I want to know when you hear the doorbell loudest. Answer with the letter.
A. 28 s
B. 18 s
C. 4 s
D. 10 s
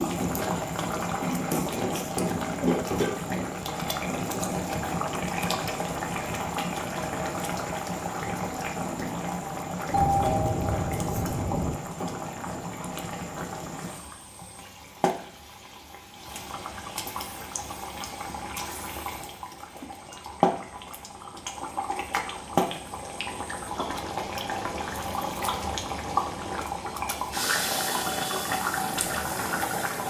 D.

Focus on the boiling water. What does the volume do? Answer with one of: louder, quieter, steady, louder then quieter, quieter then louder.
quieter then louder.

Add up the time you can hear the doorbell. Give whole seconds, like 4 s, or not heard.
2 s.